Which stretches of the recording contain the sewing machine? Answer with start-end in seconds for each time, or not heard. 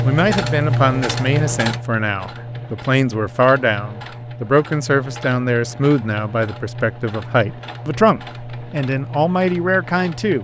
0.0-10.3.